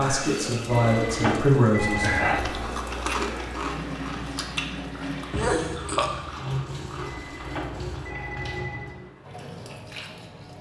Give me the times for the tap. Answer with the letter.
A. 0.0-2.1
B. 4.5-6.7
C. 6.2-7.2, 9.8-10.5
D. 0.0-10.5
D.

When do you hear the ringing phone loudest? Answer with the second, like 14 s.
1 s.